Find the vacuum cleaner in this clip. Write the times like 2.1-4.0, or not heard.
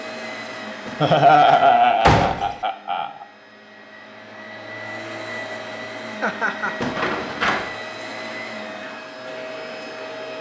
0.0-10.3.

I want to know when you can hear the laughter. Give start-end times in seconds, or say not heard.
1.0-3.2, 6.2-6.9.